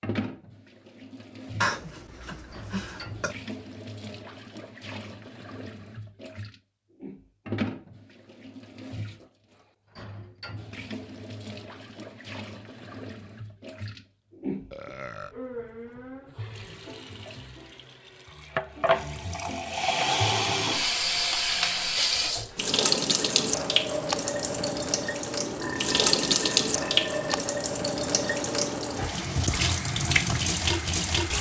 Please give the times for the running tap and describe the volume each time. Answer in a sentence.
You can hear the running tap from 0.0 to 31.3 s, getting louder.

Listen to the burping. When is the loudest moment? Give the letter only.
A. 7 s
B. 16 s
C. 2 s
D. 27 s
C.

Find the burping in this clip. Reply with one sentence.
The burping can be heard from 1.6 to 3.4 s, from 14.7 to 15.3 s and from 25.4 to 27.4 s.